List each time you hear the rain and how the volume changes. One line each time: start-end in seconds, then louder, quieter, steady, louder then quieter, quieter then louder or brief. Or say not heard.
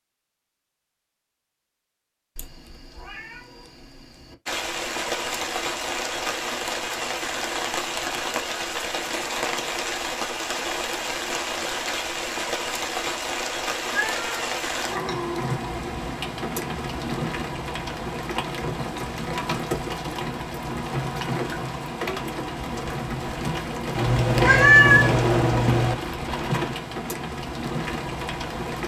4.5-28.8 steady.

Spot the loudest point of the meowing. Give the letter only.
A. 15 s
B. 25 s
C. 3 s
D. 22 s
B.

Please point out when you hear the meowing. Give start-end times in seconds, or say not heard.
2.4-4.3, 13.8-15.4, 23.9-25.9.